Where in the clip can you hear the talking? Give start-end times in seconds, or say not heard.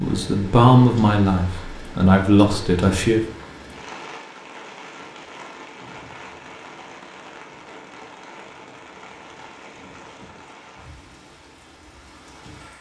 0.0-3.2.